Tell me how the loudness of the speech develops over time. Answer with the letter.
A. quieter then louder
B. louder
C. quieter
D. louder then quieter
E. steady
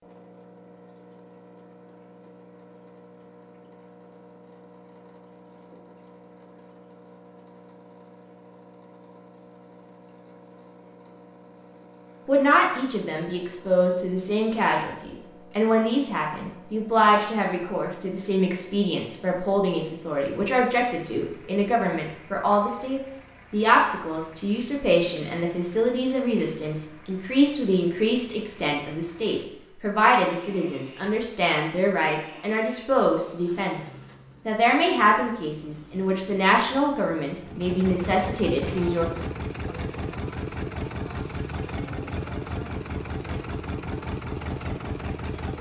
E.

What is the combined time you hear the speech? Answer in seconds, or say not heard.
26 s.